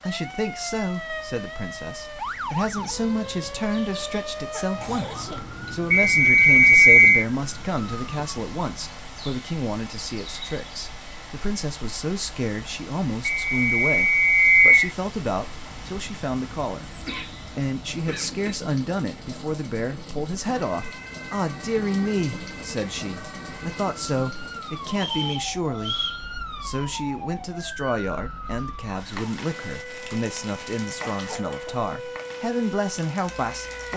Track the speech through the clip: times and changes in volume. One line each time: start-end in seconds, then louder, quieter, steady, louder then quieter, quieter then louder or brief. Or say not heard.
0.1-33.9 steady.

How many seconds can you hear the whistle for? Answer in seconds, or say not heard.
4 s.